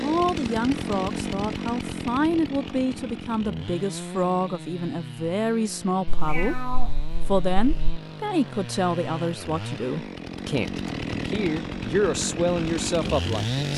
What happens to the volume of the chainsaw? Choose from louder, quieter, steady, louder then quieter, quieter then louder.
quieter then louder.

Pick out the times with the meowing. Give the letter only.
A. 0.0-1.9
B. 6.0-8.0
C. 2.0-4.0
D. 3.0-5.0
B.